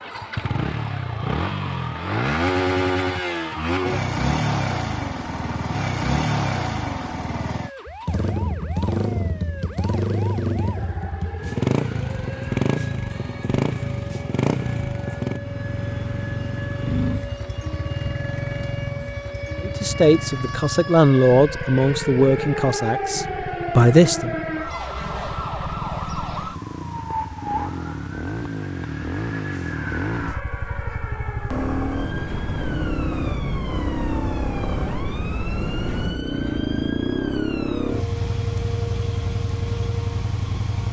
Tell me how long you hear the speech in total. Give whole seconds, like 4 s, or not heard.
5 s.